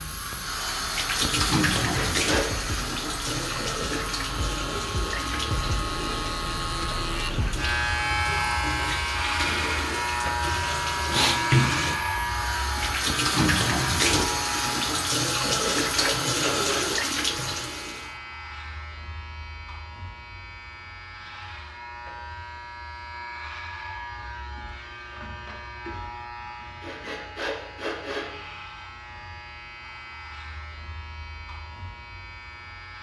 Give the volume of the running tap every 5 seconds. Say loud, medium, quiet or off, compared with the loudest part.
loud, medium, loud, loud, off, off, off.